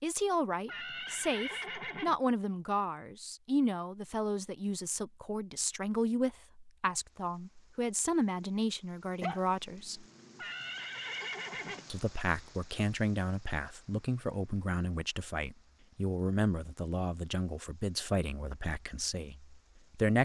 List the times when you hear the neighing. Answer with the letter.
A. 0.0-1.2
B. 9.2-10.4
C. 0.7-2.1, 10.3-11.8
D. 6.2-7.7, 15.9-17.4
C.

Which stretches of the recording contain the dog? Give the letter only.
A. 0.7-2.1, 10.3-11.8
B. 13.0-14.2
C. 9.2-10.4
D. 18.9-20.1
C.